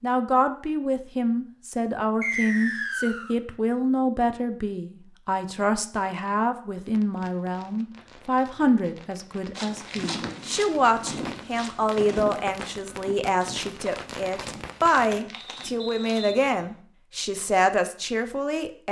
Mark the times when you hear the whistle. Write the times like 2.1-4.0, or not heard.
2.2-3.4, 15.3-16.8.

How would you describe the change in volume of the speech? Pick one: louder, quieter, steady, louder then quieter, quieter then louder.
steady.